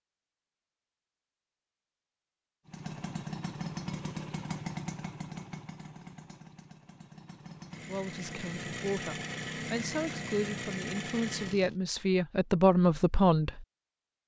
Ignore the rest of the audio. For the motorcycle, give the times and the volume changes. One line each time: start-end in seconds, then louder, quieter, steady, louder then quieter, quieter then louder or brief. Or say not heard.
2.6-11.8 quieter then louder.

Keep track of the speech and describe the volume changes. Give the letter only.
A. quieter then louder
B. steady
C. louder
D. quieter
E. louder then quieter
C.